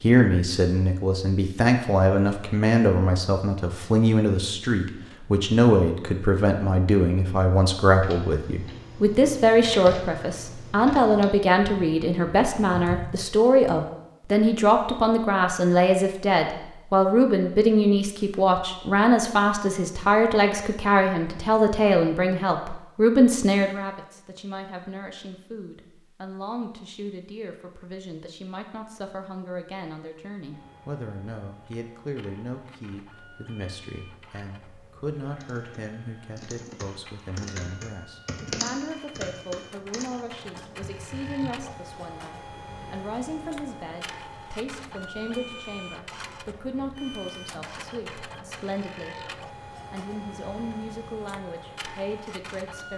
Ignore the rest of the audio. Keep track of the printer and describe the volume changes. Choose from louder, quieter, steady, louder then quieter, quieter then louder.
louder.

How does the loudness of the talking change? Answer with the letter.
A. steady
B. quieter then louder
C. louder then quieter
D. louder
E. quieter
E.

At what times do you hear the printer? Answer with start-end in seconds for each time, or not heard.
30.5-52.9.